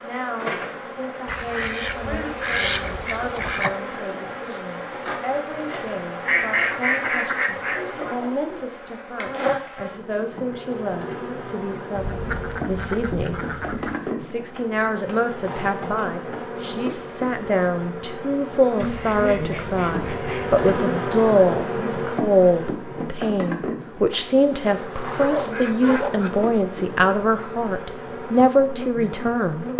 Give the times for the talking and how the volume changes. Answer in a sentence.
The talking can be heard from 0.0 to 29.7 s, getting louder.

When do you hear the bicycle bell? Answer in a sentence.
You can't hear the bicycle bell here.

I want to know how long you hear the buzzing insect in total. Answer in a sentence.
You can hear the buzzing insect for 30 seconds altogether.